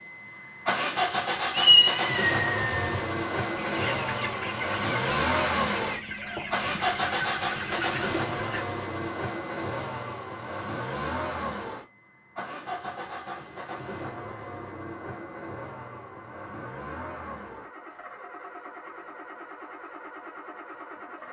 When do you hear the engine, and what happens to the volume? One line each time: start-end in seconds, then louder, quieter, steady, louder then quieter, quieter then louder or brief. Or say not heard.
0.0-21.2 quieter.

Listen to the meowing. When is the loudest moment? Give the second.
2 s.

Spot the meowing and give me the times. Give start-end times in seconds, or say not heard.
1.5-3.0.